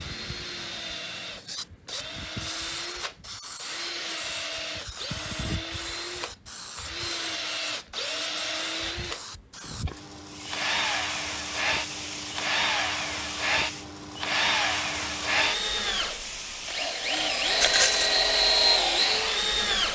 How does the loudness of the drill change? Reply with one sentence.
The loudness of the drill goes up.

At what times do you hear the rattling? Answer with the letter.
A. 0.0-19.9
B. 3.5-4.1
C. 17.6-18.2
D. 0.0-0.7
C.